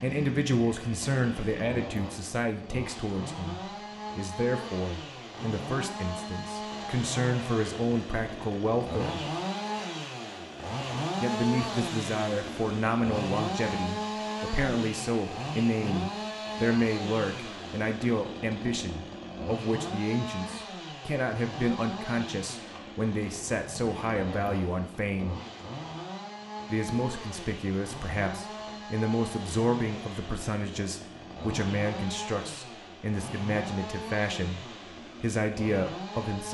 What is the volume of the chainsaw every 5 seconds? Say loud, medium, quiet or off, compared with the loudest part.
medium, loud, loud, loud, medium, medium, medium, medium.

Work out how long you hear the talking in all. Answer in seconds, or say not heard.
33 s.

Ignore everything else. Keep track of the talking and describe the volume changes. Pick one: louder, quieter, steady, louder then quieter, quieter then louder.
steady.